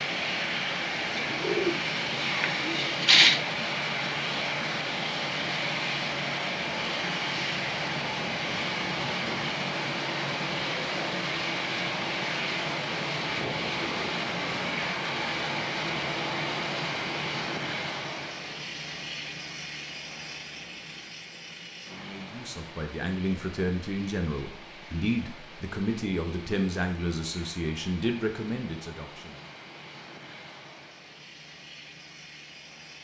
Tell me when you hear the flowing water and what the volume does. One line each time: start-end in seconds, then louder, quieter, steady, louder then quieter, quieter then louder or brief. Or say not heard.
not heard.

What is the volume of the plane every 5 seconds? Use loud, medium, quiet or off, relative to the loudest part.
loud, loud, loud, loud, quiet, quiet, quiet.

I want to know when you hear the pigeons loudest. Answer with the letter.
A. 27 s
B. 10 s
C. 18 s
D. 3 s
D.